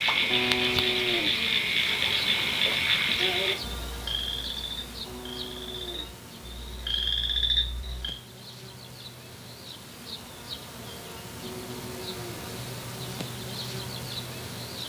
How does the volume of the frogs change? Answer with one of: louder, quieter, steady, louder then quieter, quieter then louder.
quieter then louder.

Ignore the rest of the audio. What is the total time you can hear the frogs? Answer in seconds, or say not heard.
8 s.